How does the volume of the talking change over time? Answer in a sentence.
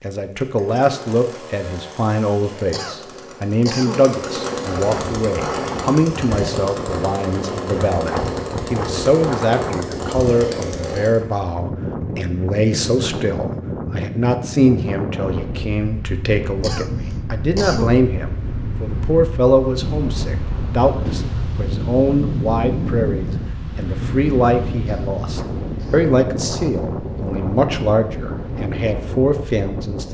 The loudness of the talking stays about the same.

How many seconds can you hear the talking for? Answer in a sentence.
You can hear the talking for 30 seconds altogether.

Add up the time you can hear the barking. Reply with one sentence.
The barking can't be heard in this clip.